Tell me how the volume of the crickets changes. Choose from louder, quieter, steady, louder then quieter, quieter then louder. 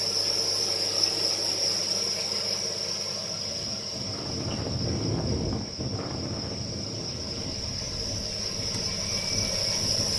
quieter then louder.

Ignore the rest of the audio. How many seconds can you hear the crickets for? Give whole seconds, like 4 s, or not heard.
10 s.